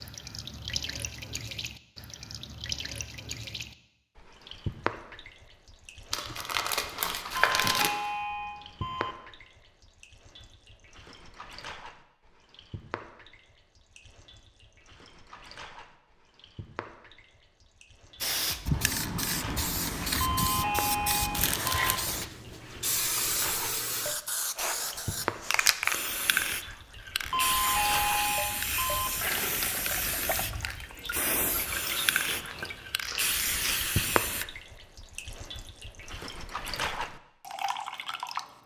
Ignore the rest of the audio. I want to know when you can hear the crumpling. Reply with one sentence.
You can hear the crumpling from 6.1 to 8.0 s, from 21.3 to 22.1 s and from 33.0 to 33.8 s.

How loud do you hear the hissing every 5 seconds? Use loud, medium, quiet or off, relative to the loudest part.
off, off, off, loud, loud, loud, loud, off.